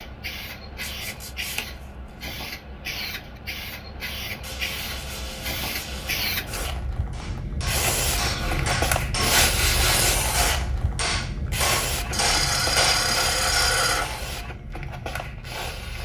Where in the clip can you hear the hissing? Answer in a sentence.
The hissing can be heard from 0.0 to 16.0 s.